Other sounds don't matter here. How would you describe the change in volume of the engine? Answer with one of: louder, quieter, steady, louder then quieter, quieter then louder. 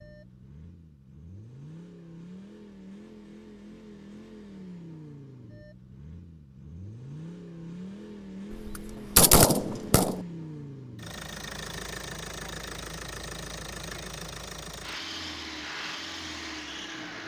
louder.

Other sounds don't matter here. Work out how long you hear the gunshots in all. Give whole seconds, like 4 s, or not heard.
2 s.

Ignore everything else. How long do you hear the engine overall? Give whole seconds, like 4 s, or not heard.
17 s.